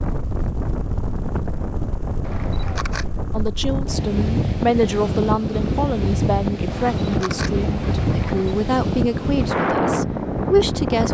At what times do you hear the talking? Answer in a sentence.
You can hear the talking from 3.3 to 11.0 s.